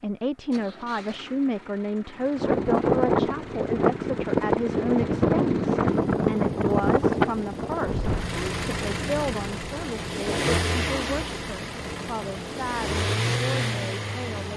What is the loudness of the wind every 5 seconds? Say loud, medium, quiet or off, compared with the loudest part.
loud, loud, quiet.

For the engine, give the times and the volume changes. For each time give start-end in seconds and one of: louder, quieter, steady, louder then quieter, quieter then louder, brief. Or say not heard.
0.1-14.5 louder.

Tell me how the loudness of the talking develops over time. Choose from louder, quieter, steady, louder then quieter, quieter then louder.
quieter.